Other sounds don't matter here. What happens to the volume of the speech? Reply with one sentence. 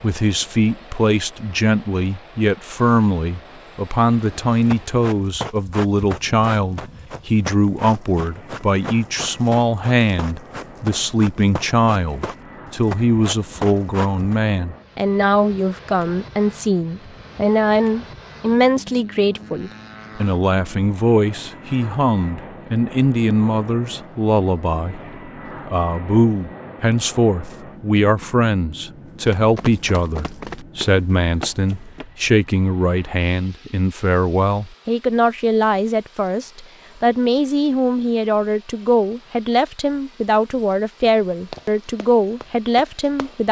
The loudness of the speech stays about the same.